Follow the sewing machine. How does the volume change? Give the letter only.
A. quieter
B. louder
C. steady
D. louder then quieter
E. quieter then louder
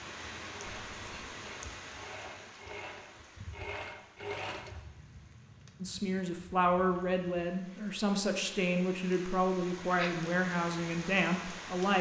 B.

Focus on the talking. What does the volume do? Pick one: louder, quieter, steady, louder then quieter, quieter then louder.
steady.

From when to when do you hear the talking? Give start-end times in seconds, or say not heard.
5.8-11.9.